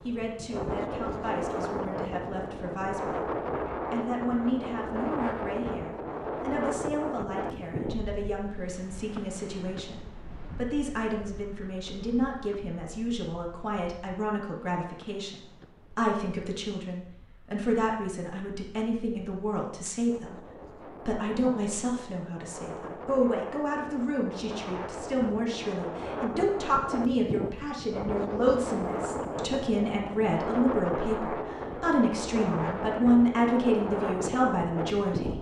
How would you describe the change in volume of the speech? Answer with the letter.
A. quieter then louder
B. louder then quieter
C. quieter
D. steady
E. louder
E.